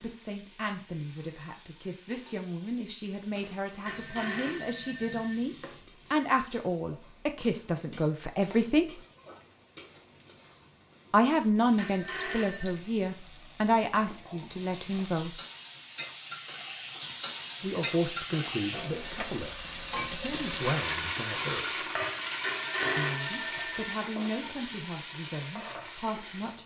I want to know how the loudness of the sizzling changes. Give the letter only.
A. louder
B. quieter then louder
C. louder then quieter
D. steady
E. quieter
A.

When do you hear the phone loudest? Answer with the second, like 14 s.
23 s.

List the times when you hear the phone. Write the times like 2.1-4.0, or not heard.
3.9-5.3, 11.8-12.8, 22.4-23.9.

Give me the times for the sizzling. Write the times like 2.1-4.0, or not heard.
0.0-26.6.